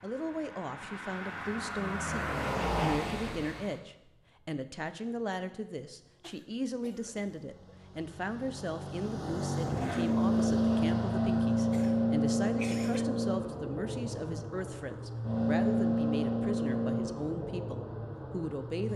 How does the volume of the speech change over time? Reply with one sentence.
The volume of the speech stays about the same.